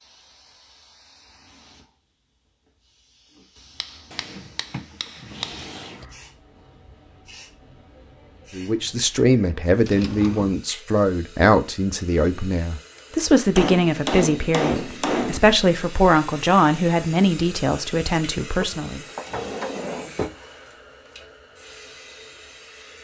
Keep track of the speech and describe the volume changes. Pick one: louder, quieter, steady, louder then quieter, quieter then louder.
steady.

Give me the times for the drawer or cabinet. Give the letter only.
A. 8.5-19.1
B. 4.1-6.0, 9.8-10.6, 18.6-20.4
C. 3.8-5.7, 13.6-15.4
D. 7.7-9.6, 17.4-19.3
B.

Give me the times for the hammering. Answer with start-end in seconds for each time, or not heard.
3.8-5.7, 13.6-15.4.